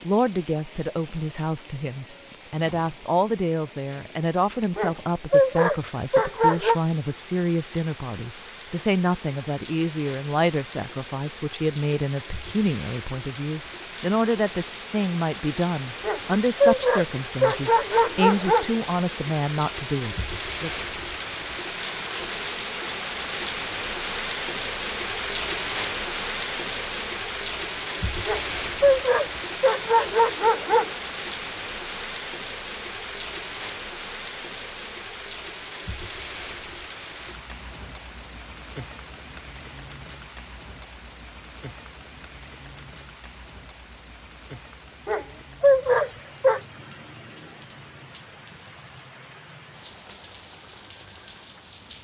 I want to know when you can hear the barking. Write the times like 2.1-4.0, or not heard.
4.8-6.8, 16.0-18.7, 28.2-30.9, 45.0-46.6.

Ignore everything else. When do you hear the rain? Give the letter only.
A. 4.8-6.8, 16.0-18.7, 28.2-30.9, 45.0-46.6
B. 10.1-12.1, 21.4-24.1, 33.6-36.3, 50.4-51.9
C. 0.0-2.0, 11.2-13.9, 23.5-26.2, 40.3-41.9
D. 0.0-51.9
D.